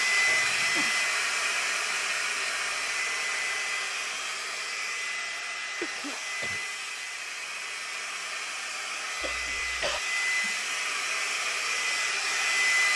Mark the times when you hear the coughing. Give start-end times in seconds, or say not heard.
0.2-0.9, 5.8-6.7, 9.2-10.0.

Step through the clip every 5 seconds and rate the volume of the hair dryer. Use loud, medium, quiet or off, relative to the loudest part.
loud, medium, loud.